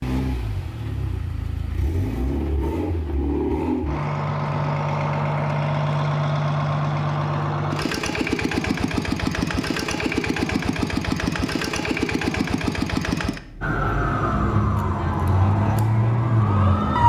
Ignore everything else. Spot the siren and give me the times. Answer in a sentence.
You can hear the siren from 13.6 to 17.0 s.